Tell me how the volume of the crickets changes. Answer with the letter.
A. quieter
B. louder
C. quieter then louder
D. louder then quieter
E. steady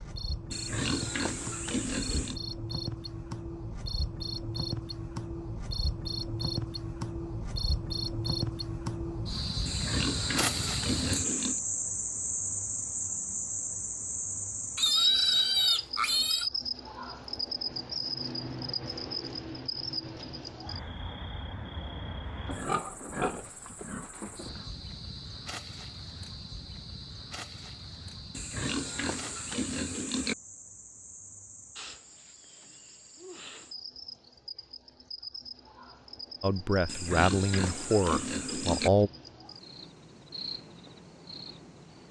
A.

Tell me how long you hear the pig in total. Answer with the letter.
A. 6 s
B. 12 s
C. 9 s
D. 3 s
B.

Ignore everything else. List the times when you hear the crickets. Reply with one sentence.
The crickets can be heard from 0.0 to 42.0 s.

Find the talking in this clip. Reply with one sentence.
The talking can be heard from 36.4 to 39.1 s.